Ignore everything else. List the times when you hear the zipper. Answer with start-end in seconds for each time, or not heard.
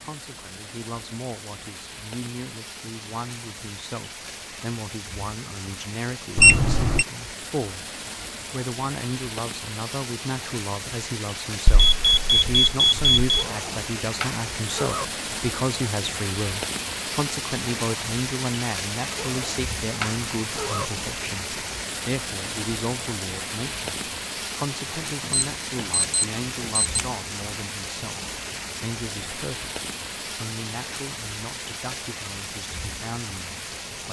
13.2-15.1, 19.1-20.9.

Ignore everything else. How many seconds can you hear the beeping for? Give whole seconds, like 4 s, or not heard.
4 s.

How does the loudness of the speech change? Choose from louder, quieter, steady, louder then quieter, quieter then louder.
louder then quieter.